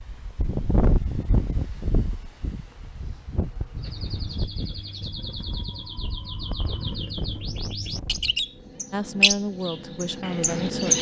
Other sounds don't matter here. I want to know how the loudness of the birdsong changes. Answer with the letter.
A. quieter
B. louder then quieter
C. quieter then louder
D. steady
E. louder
E.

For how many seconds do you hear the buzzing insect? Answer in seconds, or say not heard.
2 s.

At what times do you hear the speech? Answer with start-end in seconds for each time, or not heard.
8.9-10.9.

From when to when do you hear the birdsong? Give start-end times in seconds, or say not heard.
3.8-10.9.